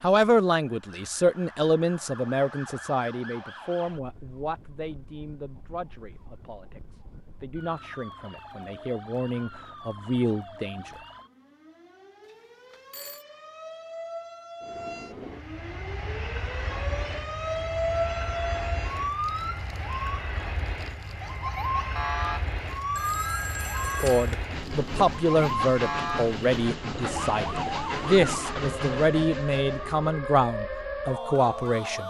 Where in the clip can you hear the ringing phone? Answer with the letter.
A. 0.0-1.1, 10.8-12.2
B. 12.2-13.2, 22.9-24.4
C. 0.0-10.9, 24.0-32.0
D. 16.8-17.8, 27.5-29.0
B.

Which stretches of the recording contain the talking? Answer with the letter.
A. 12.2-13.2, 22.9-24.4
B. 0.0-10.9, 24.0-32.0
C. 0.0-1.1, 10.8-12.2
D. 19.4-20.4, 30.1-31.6
B.